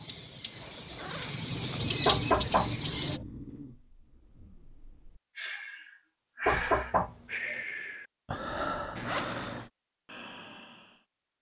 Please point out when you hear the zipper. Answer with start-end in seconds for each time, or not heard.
0.6-1.9, 8.9-9.7.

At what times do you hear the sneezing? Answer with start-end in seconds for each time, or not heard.
not heard.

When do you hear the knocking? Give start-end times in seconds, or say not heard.
2.0-3.2, 6.5-7.6.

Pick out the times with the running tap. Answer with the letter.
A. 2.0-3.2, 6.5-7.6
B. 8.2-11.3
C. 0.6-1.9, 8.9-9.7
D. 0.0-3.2
D.